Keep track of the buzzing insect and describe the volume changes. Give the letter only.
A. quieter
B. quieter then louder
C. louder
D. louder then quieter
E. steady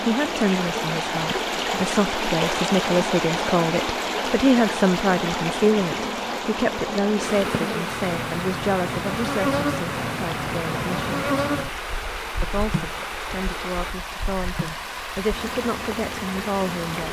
D.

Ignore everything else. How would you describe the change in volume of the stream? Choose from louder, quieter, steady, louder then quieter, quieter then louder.
quieter.